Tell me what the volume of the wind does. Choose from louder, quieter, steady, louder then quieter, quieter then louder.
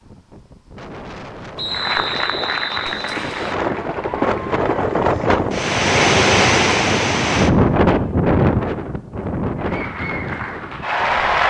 louder then quieter.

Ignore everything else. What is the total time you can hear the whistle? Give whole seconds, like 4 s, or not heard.
2 s.